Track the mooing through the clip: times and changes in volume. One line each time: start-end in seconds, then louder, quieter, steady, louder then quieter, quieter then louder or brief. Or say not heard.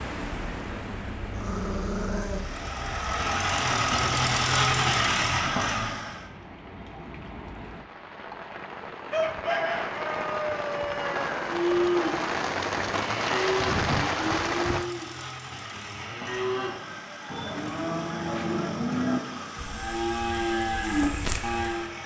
11.4-21.9 quieter then louder.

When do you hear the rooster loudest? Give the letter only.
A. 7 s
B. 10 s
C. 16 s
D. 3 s
B.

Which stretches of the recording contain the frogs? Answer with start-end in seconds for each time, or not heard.
not heard.